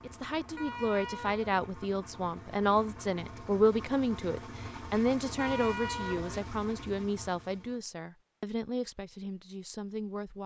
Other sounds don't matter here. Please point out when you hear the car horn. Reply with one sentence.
The car horn can be heard from 0.6 to 1.4 s and from 5.3 to 6.4 s.